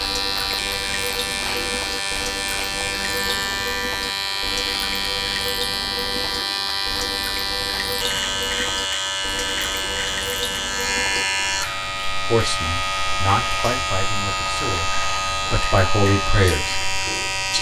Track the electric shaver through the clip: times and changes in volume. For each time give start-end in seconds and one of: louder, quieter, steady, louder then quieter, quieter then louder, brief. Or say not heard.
0.0-17.5 steady.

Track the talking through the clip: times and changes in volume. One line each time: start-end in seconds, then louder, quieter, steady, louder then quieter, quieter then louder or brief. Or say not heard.
12.3-16.8 quieter then louder.